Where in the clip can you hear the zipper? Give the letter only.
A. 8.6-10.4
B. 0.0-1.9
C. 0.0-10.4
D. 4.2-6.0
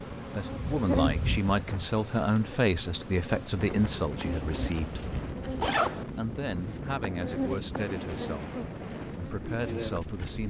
D.